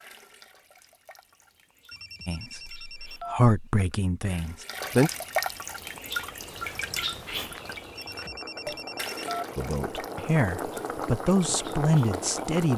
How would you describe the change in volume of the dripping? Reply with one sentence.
The loudness of the dripping goes up, then down.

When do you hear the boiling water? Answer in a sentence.
The boiling water can be heard from 5.7 to 12.7 s.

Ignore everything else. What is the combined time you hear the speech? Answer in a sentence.
The speech can be heard for 6 seconds in total.